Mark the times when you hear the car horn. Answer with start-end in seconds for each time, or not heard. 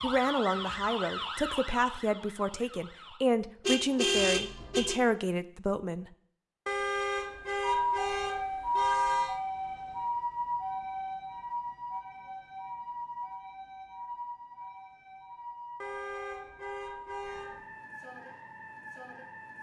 3.6-5.0, 6.7-9.4, 15.8-17.6.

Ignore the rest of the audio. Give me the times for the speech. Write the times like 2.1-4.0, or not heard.
0.0-6.1.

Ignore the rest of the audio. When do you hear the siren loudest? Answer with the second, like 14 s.
9 s.